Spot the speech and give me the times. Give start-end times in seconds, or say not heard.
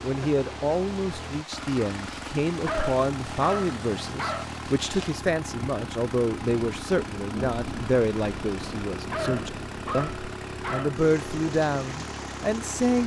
0.0-13.0.